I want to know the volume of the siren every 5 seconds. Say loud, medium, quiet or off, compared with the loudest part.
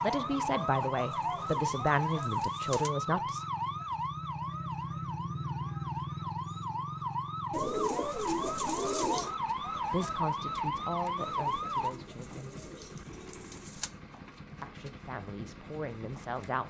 loud, loud, loud, off.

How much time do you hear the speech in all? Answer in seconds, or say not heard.
8 s.